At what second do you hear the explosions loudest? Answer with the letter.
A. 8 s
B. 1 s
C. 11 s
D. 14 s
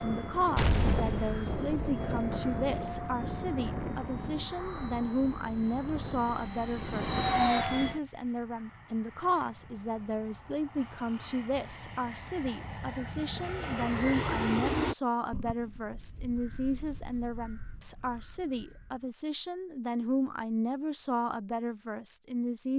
B.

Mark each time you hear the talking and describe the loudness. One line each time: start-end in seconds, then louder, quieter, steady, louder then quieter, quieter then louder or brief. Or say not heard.
0.0-22.7 steady.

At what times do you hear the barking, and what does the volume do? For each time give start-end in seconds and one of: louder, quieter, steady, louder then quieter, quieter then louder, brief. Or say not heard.
not heard.